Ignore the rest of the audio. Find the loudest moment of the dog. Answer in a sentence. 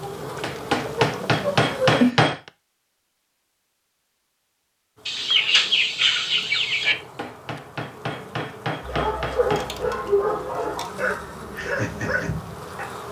The volume of the dog peaks at 10 seconds.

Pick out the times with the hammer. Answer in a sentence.
You can hear the hammer from 0.4 to 2.5 s and from 6.9 to 9.8 s.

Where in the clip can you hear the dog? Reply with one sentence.
The dog can be heard from 8.8 to 12.9 s.